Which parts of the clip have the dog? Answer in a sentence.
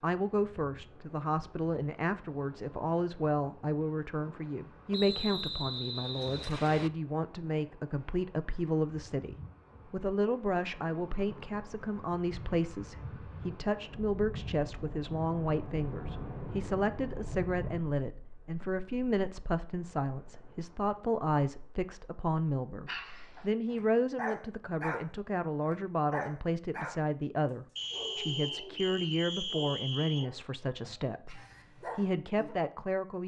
The dog can be heard from 22.9 to 27.0 s and from 27.9 to 32.5 s.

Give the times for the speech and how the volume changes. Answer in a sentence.
The speech can be heard from 0.0 to 33.2 s, at a steady volume.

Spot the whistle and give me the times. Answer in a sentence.
You can hear the whistle from 4.9 to 6.9 s and from 27.8 to 30.3 s.